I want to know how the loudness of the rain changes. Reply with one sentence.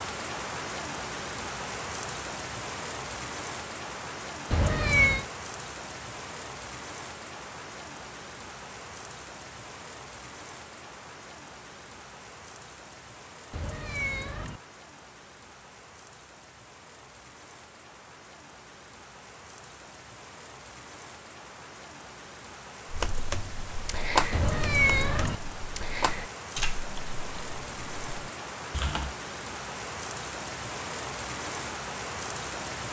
The loudness of the rain goes down, then up.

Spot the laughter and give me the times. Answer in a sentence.
You can't hear the laughter here.